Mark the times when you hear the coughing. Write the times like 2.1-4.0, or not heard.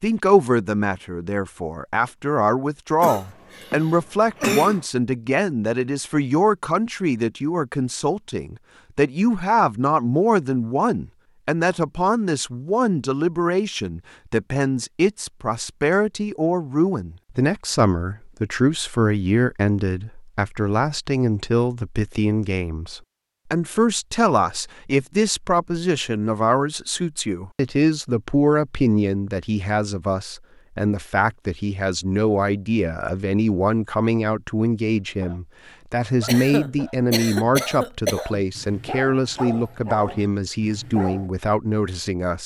3.0-4.8, 36.2-38.5.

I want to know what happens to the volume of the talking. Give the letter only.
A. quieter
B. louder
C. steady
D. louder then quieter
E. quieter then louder
C.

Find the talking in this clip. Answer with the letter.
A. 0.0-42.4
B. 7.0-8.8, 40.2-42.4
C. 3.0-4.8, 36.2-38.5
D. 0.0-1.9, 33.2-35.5
A.